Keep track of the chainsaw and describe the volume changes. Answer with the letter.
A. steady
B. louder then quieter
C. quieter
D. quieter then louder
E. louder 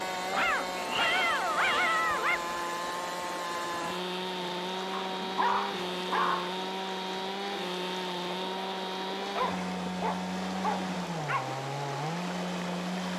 A.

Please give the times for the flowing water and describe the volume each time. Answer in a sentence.
The flowing water can be heard from 0.0 to 13.1 s, at a steady volume.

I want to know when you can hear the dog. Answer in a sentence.
You can hear the dog from 0.3 to 2.4 s, from 5.0 to 6.5 s and from 9.2 to 11.5 s.